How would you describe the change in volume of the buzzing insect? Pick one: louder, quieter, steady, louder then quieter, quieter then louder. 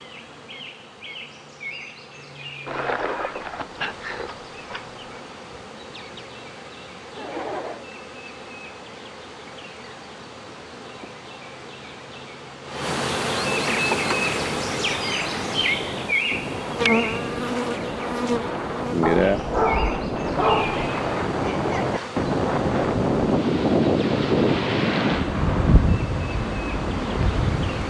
louder then quieter.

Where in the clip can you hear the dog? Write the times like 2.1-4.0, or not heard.
2.6-5.2, 19.0-20.9.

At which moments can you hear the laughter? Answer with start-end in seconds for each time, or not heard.
7.2-7.8, 21.4-22.2.